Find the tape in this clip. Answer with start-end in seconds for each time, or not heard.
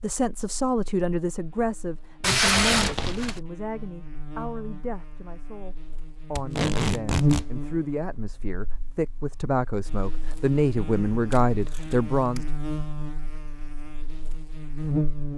2.2-3.4, 6.3-7.5, 11.3-12.4.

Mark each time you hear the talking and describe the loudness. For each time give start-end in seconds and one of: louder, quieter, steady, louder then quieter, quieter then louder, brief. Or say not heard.
0.0-12.4 quieter then louder.